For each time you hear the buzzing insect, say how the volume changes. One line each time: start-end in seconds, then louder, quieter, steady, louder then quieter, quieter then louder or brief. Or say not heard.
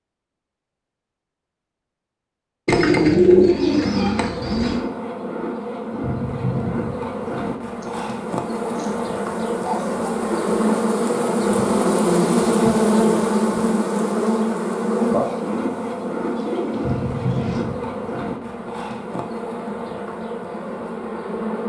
3.5-21.6 louder then quieter.